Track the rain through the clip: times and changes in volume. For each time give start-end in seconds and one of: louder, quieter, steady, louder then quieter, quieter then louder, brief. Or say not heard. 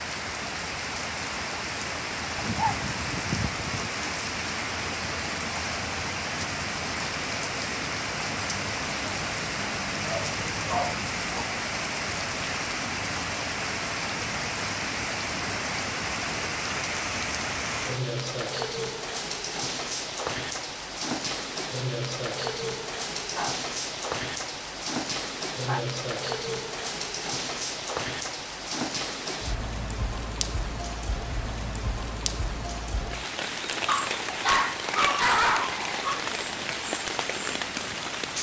0.0-38.3 steady.